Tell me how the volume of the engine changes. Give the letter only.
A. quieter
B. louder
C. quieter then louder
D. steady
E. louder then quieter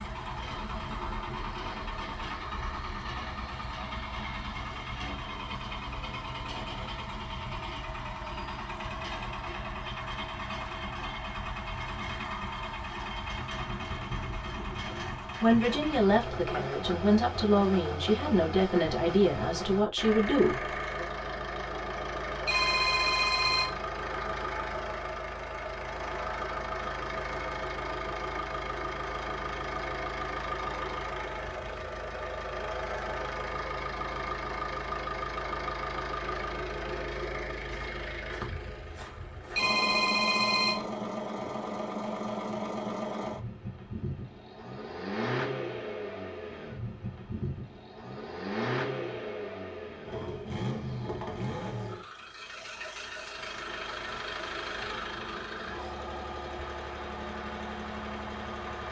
D.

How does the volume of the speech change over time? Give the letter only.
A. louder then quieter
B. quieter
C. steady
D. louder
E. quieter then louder
C.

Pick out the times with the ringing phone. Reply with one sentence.
You can hear the ringing phone from 22.4 to 23.8 s and from 39.5 to 40.9 s.